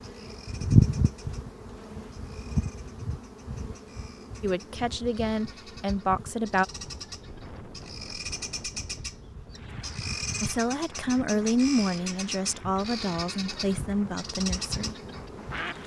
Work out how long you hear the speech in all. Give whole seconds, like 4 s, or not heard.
7 s.